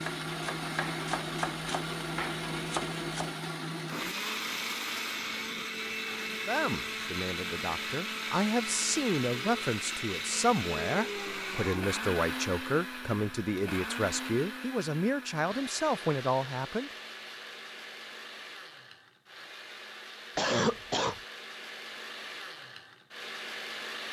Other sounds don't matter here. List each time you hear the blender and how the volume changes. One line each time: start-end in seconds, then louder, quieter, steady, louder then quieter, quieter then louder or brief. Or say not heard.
0.0-24.0 quieter.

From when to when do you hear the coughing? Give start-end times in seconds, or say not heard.
20.4-21.1.